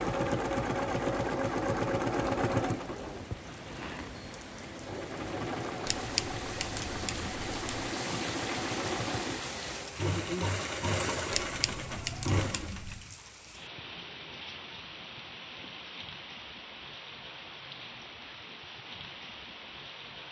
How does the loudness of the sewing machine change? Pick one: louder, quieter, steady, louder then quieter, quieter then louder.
quieter then louder.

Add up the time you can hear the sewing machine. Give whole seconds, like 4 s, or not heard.
13 s.